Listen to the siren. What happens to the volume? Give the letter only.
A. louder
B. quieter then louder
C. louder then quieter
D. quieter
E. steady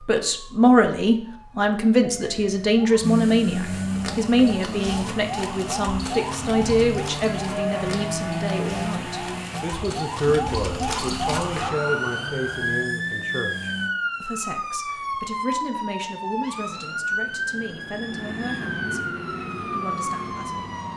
A.